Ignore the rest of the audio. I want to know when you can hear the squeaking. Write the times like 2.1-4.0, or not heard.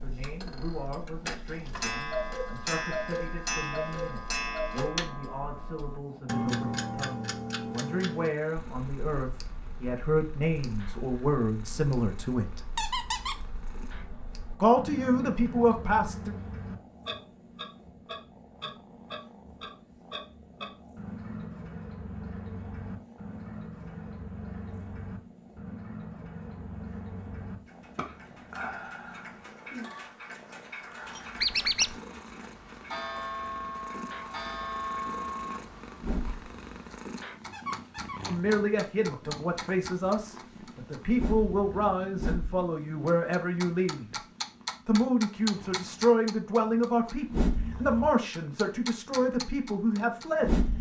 12.8-13.4, 31.4-31.9, 37.5-38.2.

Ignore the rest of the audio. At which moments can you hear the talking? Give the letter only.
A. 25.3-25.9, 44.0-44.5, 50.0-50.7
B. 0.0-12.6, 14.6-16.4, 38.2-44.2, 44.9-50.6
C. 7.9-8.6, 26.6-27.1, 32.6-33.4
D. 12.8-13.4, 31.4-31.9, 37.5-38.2
B.